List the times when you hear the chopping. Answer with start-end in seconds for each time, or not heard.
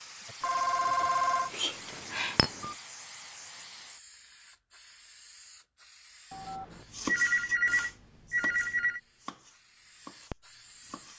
6.8-11.1.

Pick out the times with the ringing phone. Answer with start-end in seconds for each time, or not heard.
0.4-2.8, 6.3-9.0.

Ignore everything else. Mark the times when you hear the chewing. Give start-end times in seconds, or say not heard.
not heard.